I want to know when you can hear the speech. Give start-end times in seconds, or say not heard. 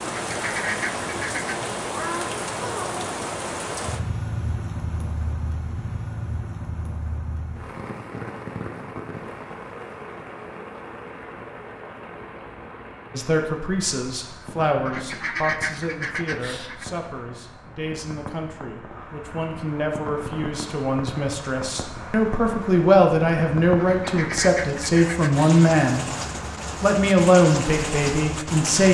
13.1-26.1, 26.8-28.8.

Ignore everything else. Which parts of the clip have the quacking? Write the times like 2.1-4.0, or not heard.
0.1-1.7, 14.8-16.9, 23.8-25.6.